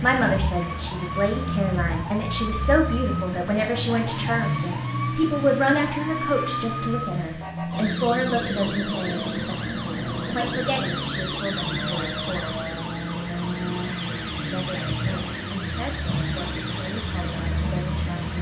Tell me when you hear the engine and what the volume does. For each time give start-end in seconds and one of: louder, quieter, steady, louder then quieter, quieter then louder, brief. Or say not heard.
0.0-18.3 steady.